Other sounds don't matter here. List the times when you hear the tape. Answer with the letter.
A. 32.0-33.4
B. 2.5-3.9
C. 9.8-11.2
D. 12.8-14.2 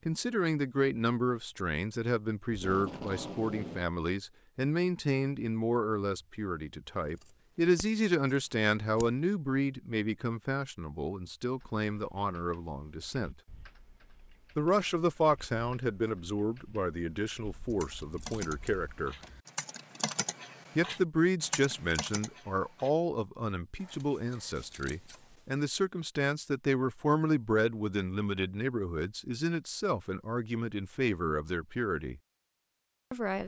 B.